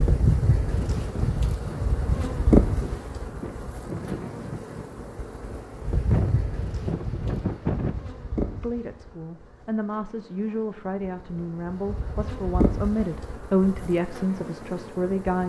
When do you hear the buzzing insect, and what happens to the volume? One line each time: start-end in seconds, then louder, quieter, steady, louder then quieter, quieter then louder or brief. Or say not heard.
0.0-15.4 quieter then louder.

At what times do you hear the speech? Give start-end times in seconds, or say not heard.
8.6-15.4.